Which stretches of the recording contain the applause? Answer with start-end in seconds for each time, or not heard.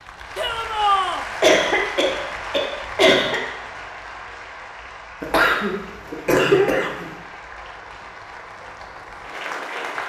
0.0-10.0.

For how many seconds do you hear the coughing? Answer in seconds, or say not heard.
4 s.